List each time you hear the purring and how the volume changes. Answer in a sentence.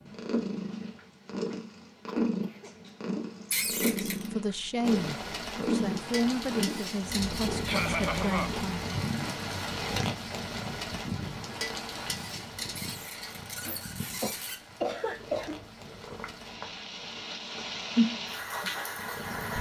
You can hear the purring from 0.0 to 19.5 s, getting quieter then louder.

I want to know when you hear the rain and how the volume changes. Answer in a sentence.
The rain can be heard from 4.8 to 19.5 s, getting quieter then louder.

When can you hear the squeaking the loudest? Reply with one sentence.
The loudest moment of the squeaking is at 4 seconds.